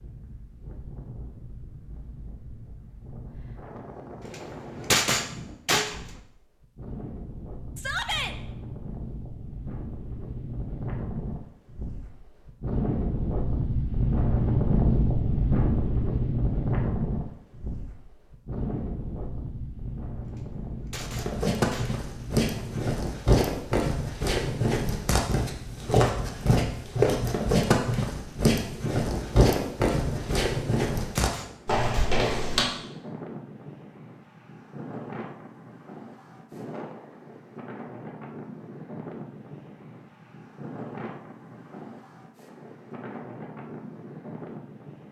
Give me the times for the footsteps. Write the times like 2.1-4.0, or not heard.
21.0-32.7.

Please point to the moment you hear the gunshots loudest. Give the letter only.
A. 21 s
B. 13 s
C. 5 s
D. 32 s
C.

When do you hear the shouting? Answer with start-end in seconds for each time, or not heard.
7.8-8.3.